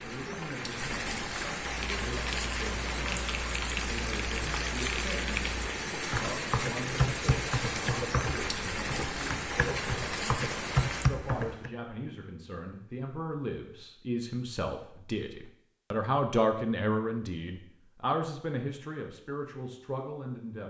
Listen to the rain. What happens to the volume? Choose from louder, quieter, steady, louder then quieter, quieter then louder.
steady.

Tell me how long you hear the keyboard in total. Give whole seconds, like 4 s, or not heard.
10 s.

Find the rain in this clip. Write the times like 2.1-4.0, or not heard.
0.0-11.1.